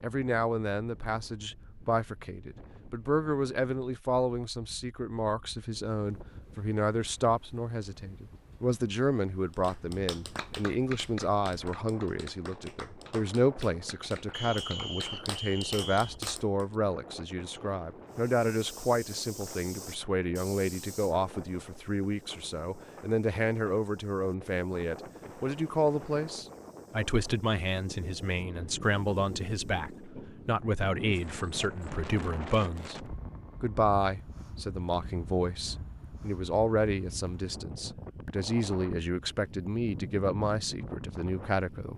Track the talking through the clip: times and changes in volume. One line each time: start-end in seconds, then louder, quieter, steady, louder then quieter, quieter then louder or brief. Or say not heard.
0.0-41.9 steady.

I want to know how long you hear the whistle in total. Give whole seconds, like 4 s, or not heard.
2 s.